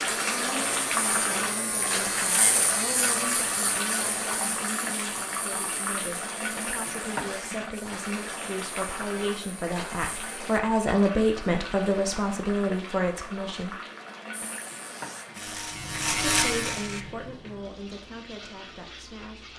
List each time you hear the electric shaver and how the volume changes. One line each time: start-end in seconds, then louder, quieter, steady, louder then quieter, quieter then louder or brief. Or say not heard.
0.1-10.6 quieter
14.3-17.1 brief.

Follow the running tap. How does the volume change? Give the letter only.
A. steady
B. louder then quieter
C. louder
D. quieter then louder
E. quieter
E.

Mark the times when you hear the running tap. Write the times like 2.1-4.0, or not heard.
0.0-19.5.